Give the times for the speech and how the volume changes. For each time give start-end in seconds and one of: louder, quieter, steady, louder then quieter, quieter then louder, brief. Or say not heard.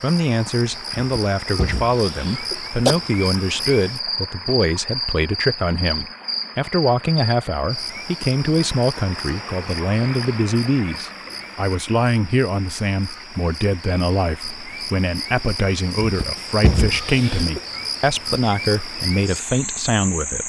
0.0-20.4 steady.